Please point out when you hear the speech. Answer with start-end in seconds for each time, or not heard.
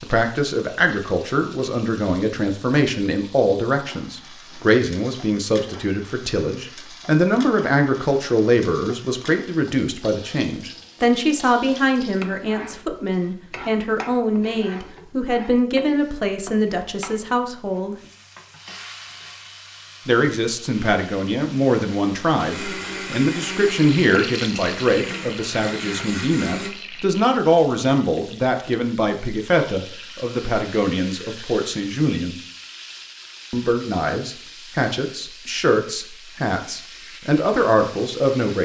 0.0-17.9, 20.1-32.4, 33.5-38.6.